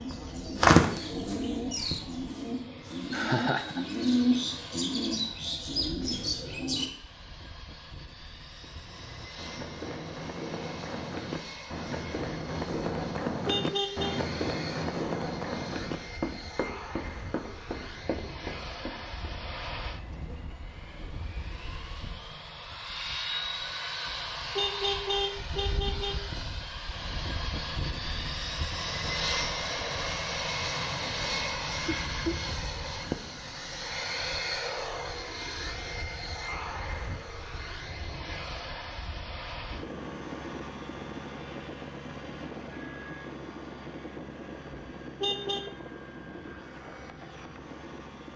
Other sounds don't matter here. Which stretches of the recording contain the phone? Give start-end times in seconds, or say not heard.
not heard.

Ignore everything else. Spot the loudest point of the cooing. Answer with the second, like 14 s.
1 s.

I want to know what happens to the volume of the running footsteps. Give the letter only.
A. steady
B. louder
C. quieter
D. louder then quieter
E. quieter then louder
D.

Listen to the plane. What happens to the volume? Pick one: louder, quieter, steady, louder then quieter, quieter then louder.
louder then quieter.